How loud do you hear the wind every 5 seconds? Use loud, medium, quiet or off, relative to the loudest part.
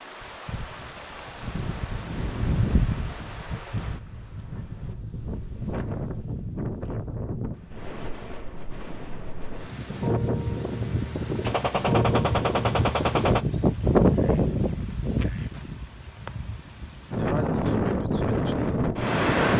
medium, medium, loud, loud.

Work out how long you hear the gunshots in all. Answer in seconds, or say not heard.
2 s.